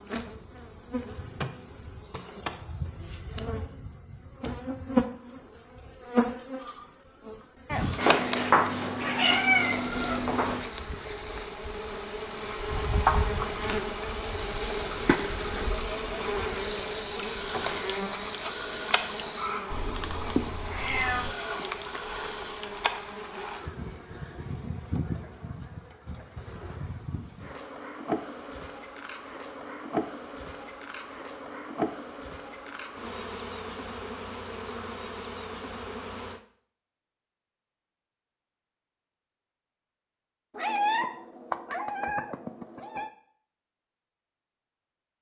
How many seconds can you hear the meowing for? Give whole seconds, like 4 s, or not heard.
7 s.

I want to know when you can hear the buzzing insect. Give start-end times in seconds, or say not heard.
0.0-36.4.